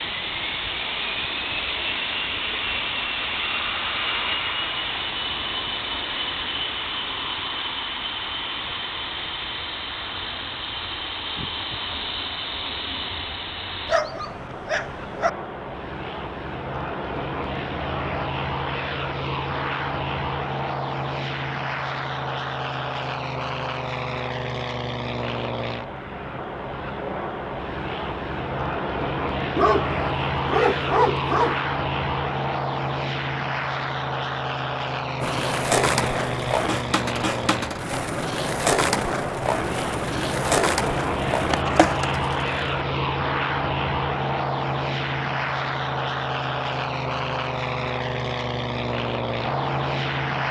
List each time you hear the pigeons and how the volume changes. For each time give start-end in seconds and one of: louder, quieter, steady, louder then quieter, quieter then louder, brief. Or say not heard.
not heard.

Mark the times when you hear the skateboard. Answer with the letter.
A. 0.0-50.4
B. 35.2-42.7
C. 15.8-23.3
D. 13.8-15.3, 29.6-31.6
B.